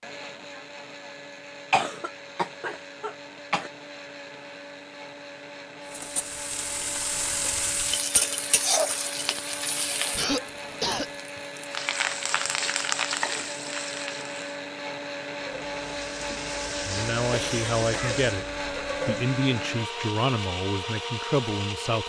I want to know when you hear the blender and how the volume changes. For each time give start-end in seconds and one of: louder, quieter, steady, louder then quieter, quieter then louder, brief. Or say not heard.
0.0-22.0 louder.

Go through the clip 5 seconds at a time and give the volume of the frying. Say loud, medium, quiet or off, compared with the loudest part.
off, loud, loud, medium, off.